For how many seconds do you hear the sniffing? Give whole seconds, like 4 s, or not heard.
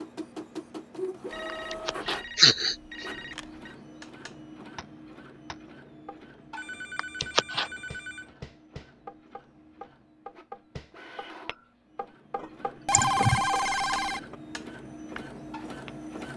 3 s.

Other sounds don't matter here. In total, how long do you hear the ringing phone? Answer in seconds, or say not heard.
6 s.